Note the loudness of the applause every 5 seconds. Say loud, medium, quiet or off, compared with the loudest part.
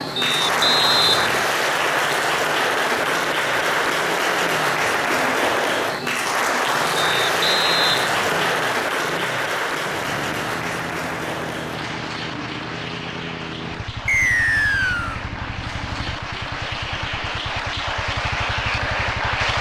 loud, loud, medium, medium.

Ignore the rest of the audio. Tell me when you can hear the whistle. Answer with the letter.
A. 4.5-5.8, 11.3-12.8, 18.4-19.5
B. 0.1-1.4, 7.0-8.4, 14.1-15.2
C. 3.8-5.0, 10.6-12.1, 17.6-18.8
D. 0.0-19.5
B.